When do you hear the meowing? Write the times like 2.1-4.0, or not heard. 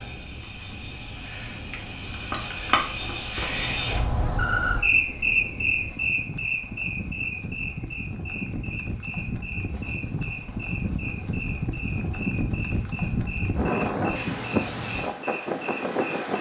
not heard.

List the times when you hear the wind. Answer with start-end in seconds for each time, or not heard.
0.0-16.3.